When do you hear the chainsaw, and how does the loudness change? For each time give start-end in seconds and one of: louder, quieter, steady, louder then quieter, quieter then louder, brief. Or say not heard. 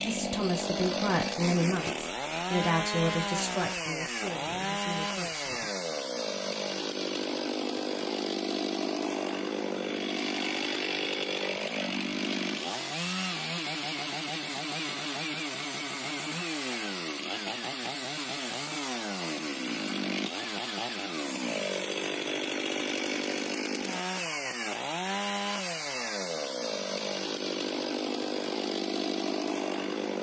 0.0-30.1 steady.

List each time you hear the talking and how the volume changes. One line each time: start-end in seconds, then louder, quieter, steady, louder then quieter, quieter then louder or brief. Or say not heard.
0.0-5.7 quieter.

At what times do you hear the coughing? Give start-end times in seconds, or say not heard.
not heard.